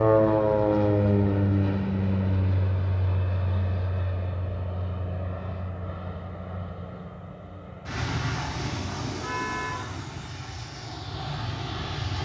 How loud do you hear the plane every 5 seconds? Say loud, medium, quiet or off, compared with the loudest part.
loud, medium, medium.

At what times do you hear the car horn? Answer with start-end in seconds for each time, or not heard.
9.2-9.8.